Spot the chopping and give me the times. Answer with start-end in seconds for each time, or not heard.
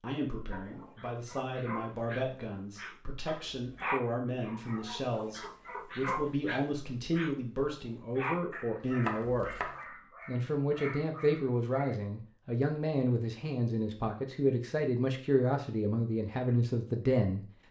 3.2-4.0, 9.1-9.8.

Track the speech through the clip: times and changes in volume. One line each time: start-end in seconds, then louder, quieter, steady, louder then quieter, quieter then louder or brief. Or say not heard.
0.0-17.4 louder.